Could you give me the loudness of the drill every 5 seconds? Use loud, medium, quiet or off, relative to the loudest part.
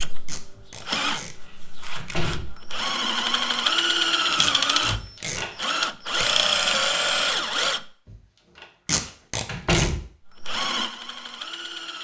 loud, loud, medium.